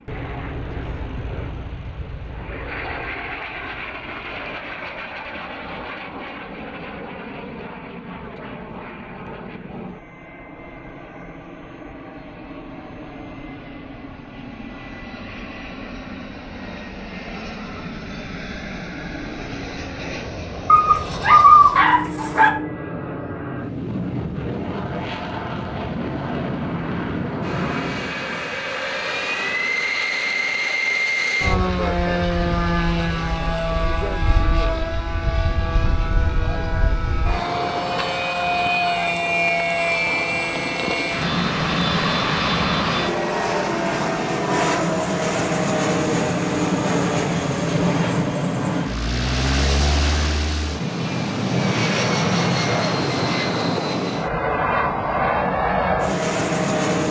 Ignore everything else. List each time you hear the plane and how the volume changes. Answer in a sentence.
The plane can be heard from 0.0 to 57.0 s, getting louder.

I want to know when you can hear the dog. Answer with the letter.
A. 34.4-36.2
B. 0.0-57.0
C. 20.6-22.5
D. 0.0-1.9
C.